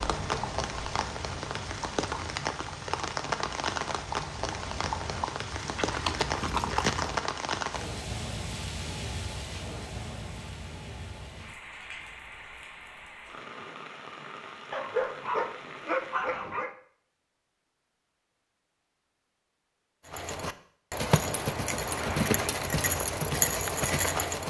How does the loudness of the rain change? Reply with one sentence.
The loudness of the rain goes down.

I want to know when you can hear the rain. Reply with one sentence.
You can hear the rain from 0.0 to 16.4 s.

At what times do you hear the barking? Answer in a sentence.
You can hear the barking from 14.7 to 16.7 s.